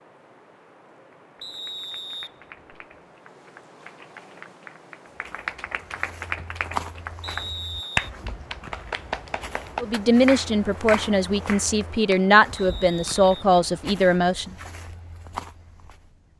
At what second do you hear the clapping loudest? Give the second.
8 s.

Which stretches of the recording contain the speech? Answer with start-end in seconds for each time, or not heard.
9.8-14.6.